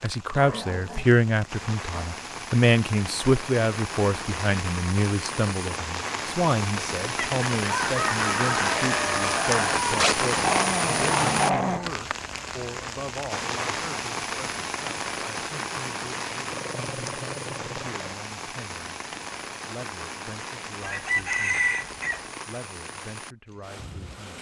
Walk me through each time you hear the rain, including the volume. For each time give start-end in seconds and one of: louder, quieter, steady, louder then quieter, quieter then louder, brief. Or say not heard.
0.0-24.3 louder then quieter.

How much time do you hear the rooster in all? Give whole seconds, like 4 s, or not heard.
4 s.